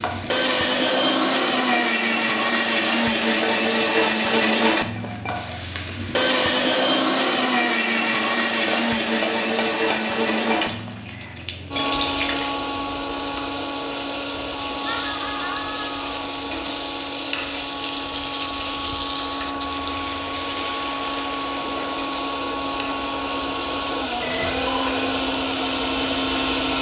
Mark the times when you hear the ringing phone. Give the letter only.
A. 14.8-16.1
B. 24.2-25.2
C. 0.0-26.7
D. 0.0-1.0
B.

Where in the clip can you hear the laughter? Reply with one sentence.
You can hear the laughter from 14.8 to 16.1 s.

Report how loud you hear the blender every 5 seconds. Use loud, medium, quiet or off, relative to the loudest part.
loud, loud, medium, medium, medium, loud.